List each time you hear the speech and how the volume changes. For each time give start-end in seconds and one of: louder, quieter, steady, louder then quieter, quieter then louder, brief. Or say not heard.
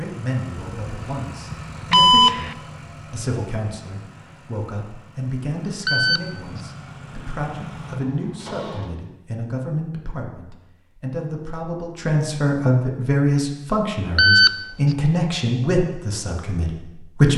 0.0-17.3 louder.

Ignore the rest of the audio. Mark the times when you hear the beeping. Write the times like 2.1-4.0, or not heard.
0.6-2.5, 5.8-6.6, 14.2-14.9.